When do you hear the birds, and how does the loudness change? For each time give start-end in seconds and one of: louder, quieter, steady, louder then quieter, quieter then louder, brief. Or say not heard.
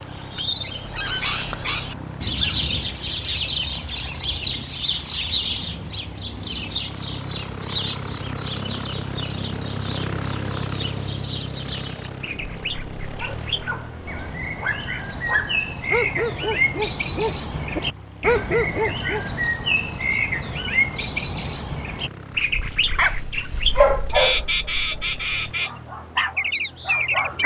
0.0-27.4 quieter then louder.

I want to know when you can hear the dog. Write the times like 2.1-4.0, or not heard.
13.2-19.2, 22.9-27.4.